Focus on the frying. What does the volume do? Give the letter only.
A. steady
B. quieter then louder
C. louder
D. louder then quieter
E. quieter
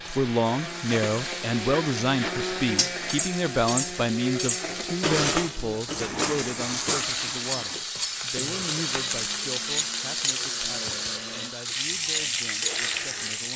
C.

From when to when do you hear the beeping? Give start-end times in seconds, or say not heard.
not heard.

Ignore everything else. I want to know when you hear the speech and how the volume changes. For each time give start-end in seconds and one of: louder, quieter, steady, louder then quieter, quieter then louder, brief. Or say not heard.
0.1-13.5 quieter.